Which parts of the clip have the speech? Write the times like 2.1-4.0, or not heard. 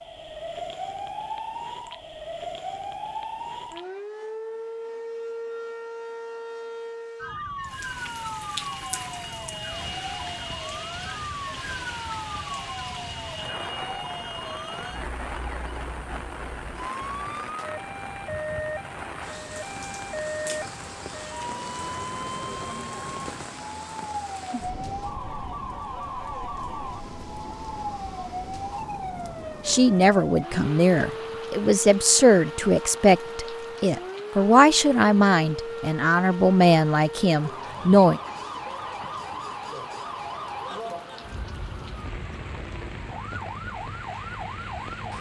29.6-38.2.